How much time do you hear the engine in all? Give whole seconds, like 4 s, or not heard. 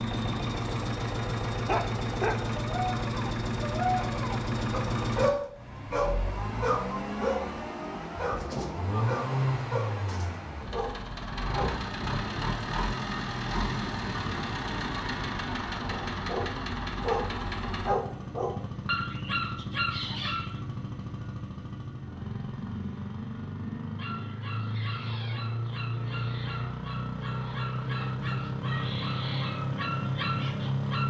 31 s.